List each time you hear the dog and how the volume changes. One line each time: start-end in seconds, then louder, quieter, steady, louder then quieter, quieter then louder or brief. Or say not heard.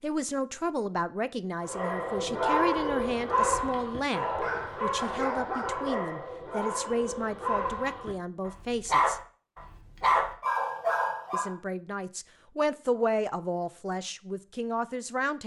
1.6-11.5 quieter then louder.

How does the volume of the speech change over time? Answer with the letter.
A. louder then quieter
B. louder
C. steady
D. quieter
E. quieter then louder
C.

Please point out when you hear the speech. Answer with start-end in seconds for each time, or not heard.
0.0-9.2, 11.3-15.4.